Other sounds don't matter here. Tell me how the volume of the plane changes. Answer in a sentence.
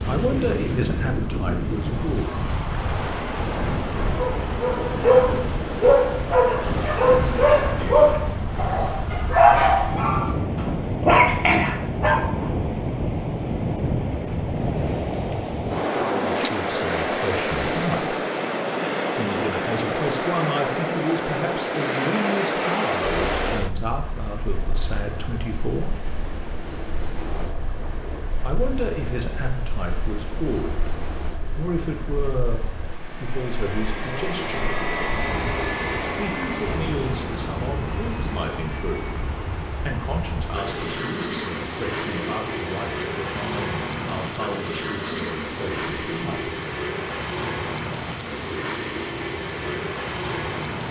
The volume of the plane goes up.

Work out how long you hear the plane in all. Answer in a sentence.
You can hear the plane for 28 seconds altogether.